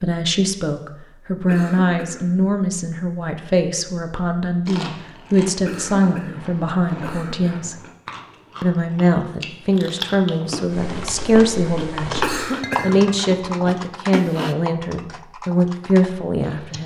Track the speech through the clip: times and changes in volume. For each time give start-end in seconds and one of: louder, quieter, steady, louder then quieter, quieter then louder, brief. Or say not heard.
0.0-7.8 steady
8.6-16.8 steady.